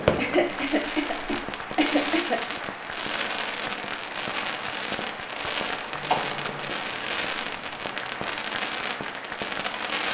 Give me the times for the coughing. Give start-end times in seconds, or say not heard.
0.1-2.5, 5.9-6.8.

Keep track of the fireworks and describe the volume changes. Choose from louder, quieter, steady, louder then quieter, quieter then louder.
steady.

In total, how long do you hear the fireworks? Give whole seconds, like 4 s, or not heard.
10 s.